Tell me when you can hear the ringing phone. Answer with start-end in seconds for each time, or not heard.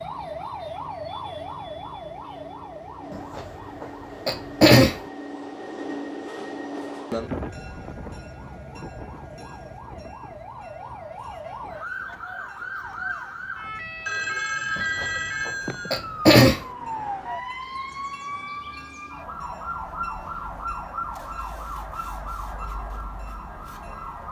14.1-16.0.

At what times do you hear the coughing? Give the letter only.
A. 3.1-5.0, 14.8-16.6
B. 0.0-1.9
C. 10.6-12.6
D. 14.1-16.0
A.